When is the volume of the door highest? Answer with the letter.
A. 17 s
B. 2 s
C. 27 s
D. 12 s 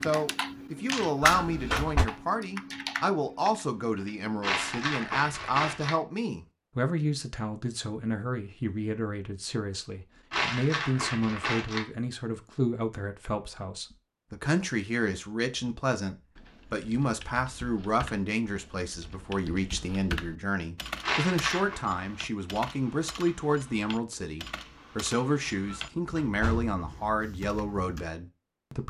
B.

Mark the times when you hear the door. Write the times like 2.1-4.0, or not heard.
1.2-2.1, 25.6-26.8.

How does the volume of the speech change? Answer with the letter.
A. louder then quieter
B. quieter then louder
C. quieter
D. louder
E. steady
E.